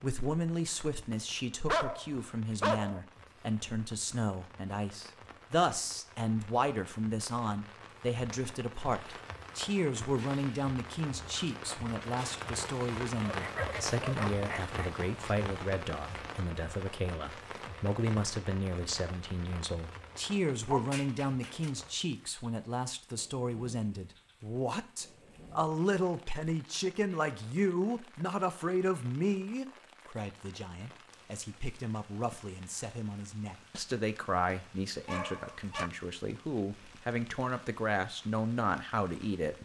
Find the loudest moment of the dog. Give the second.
2 s.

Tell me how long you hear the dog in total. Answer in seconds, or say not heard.
5 s.